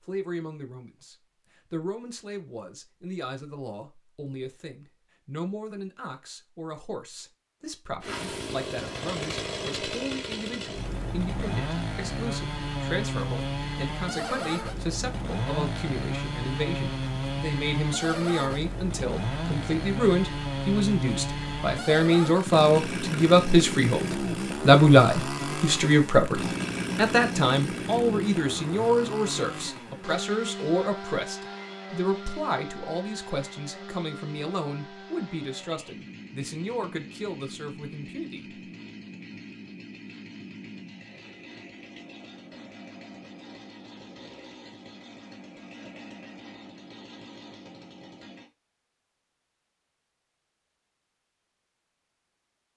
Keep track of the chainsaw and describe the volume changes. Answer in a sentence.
The loudness of the chainsaw goes down.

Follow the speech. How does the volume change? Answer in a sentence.
The volume of the speech goes up, then down.